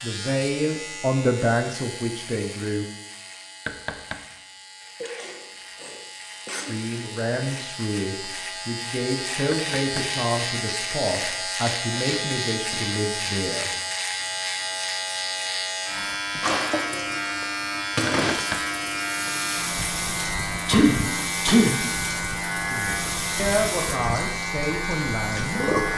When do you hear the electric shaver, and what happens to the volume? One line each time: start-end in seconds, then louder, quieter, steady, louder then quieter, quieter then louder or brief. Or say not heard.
0.0-25.9 louder.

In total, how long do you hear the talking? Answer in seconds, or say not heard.
13 s.